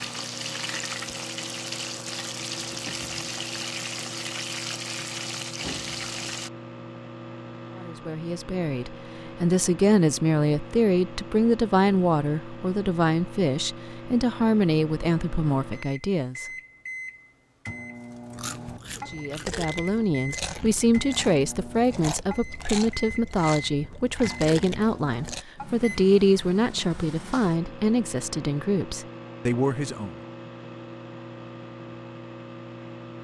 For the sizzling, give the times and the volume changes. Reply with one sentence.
The sizzling can be heard from 0.0 to 6.5 s, at a steady volume.